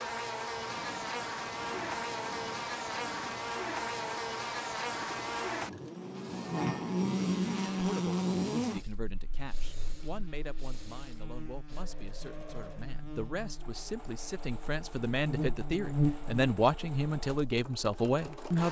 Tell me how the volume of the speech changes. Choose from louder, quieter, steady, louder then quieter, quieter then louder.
louder.